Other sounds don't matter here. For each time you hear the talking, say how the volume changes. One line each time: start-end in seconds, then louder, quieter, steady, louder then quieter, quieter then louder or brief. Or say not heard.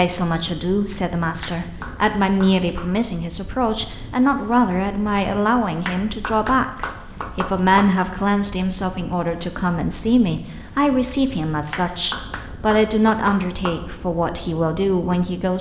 0.0-15.5 steady.